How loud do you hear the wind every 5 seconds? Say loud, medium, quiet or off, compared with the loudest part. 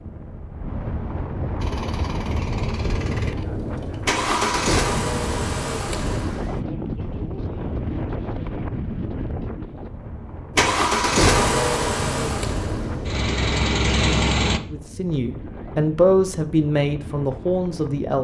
loud, loud, loud, medium.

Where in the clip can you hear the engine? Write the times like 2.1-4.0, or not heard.
1.6-6.6, 10.6-14.6.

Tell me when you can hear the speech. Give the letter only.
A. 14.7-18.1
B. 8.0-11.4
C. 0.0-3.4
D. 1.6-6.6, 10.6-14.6
A.